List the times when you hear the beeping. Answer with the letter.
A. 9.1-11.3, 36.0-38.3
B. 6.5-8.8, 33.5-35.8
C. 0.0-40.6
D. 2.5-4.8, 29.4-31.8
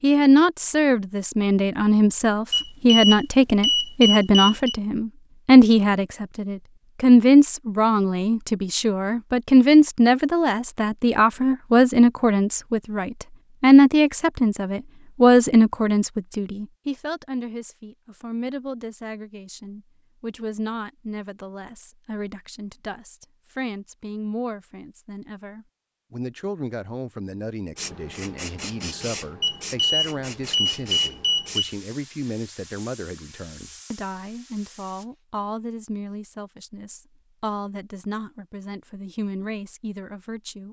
D.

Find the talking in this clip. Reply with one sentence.
The talking can be heard from 0.0 to 40.6 s.